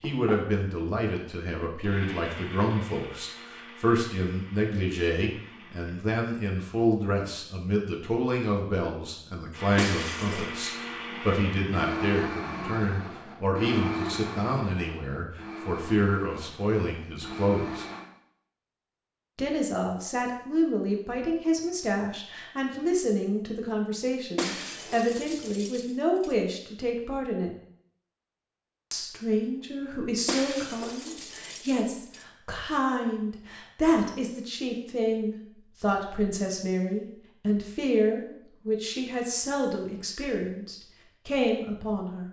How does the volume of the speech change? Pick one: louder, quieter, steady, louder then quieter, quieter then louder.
steady.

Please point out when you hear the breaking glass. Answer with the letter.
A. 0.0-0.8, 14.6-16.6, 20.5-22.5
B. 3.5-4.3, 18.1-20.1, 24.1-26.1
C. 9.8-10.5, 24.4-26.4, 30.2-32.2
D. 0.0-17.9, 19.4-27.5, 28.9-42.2
C.